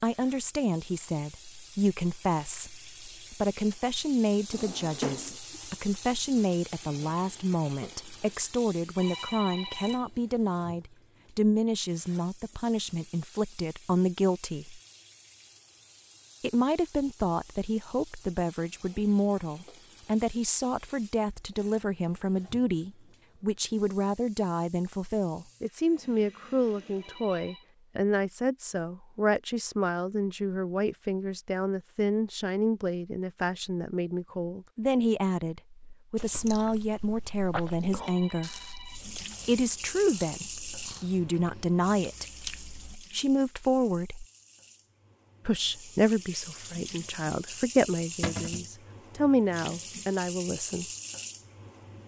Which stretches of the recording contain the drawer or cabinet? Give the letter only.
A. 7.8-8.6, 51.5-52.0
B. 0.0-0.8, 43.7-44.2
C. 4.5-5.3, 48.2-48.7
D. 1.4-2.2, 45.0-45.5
C.